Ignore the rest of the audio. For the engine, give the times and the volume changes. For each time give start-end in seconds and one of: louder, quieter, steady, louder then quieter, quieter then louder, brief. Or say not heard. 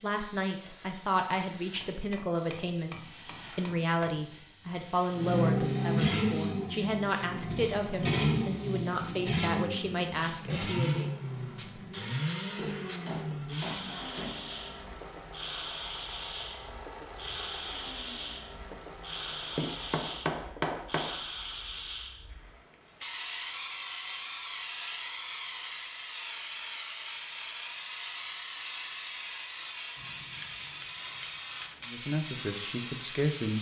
5.1-20.4 quieter.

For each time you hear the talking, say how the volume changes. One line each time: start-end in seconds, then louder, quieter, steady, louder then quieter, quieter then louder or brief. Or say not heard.
0.0-11.1 steady
31.9-33.5 brief.